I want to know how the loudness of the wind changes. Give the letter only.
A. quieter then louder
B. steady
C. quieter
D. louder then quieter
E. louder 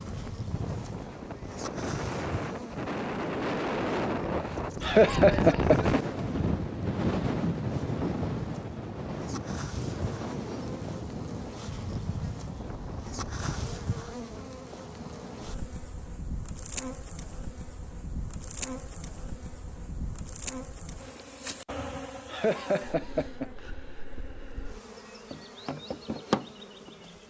D.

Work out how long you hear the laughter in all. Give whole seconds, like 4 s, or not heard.
2 s.